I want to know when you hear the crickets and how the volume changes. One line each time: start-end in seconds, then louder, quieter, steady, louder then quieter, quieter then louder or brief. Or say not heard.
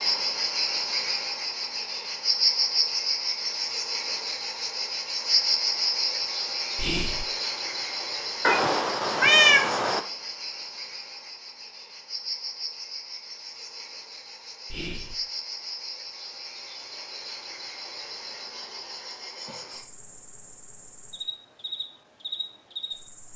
0.0-23.3 quieter.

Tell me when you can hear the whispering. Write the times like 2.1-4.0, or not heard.
6.8-7.2, 14.7-15.2.